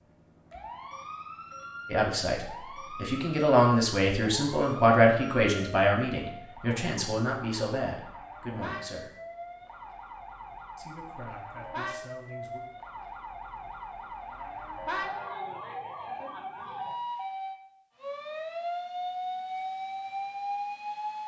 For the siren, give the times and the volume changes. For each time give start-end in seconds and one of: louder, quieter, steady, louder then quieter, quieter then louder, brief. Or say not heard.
0.0-21.2 louder.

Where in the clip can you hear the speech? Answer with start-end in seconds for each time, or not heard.
1.9-9.1, 10.8-12.6.